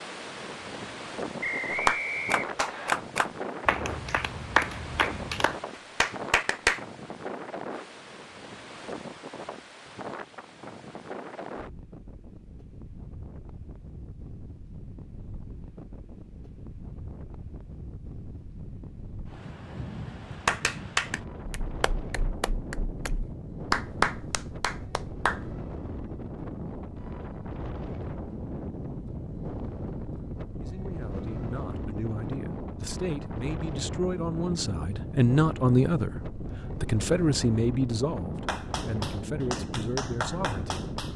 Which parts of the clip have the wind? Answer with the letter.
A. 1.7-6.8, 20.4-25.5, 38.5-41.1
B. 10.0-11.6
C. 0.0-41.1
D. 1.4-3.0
C.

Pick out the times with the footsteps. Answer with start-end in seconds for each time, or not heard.
not heard.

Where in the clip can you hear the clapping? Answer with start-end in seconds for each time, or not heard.
1.7-6.8, 20.4-25.5, 38.5-41.1.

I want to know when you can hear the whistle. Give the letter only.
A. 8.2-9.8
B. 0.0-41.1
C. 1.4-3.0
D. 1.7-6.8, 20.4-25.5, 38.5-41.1
C.